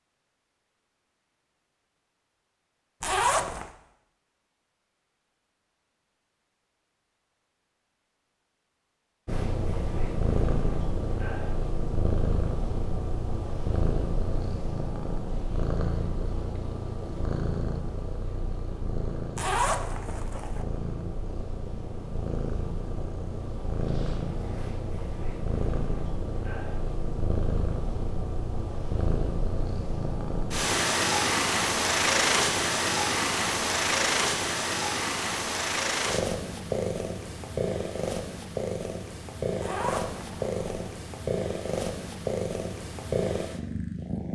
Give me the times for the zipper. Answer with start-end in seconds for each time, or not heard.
3.0-3.7, 19.4-20.6, 39.6-40.9.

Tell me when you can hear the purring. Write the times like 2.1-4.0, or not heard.
9.2-44.3.